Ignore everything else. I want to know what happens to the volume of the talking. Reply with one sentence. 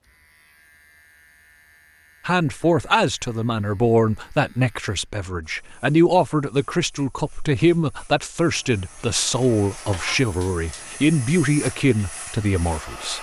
The loudness of the talking stays about the same.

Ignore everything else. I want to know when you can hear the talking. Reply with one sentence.
The talking can be heard from 2.2 to 13.1 s.